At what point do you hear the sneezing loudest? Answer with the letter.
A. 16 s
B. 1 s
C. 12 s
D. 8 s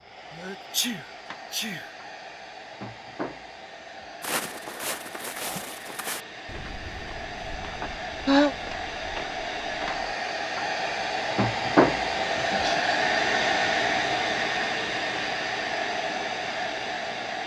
D.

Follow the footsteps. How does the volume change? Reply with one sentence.
The loudness of the footsteps goes down.